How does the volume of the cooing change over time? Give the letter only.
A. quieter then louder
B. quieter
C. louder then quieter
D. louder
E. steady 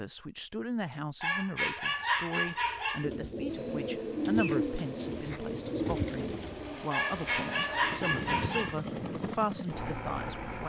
B.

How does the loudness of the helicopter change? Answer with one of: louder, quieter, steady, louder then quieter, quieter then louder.
louder.